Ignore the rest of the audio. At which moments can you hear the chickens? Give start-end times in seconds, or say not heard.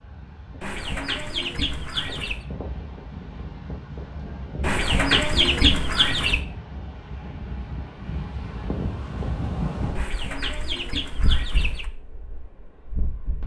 0.6-2.5, 4.6-6.4, 9.9-11.9.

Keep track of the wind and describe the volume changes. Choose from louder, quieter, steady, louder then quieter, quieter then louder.
louder then quieter.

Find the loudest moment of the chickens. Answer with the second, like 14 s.
6 s.